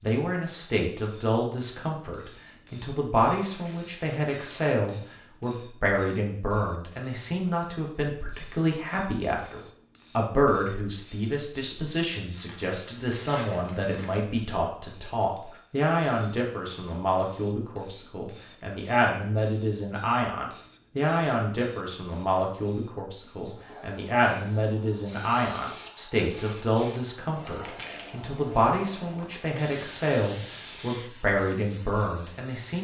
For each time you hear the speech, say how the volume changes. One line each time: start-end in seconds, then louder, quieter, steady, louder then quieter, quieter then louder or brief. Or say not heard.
0.0-32.7 steady.